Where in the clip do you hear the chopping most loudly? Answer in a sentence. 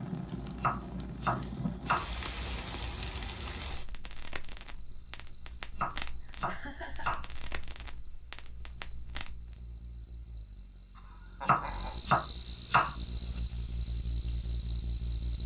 The loudest moment of the chopping is at 12 seconds.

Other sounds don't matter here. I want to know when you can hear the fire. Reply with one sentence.
You can hear the fire from 0.0 to 9.6 s.